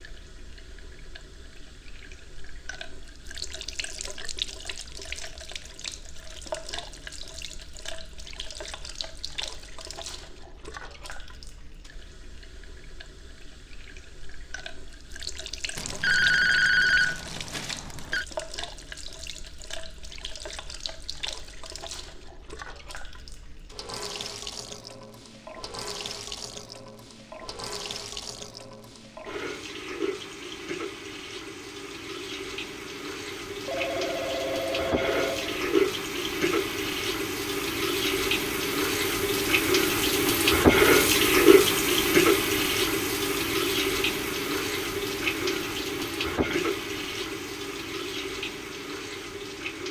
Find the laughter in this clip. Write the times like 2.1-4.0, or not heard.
not heard.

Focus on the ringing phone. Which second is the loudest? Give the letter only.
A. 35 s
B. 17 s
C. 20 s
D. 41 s
B.